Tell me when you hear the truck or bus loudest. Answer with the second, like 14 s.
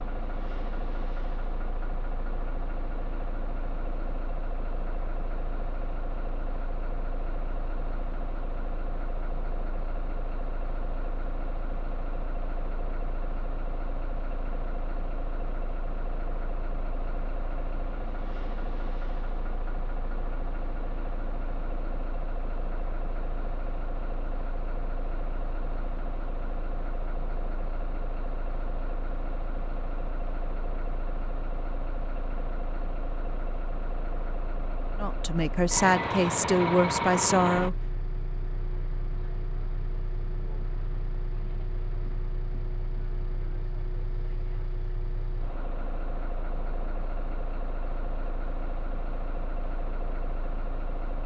37 s.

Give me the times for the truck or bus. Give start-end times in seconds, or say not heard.
0.0-51.2.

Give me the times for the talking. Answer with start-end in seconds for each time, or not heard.
35.0-37.8.